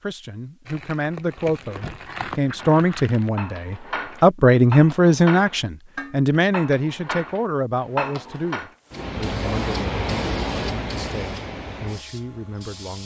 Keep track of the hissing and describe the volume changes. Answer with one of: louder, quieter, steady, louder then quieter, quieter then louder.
quieter.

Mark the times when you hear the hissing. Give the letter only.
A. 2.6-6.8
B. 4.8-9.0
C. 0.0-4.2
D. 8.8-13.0
D.